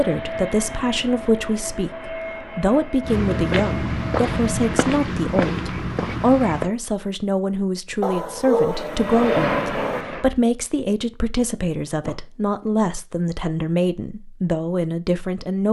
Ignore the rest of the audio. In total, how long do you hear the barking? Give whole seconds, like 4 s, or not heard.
2 s.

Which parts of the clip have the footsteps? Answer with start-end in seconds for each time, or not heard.
3.0-6.7.